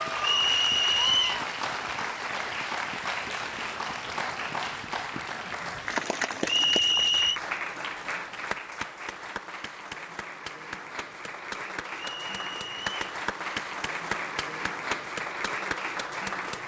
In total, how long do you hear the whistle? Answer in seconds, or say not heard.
3 s.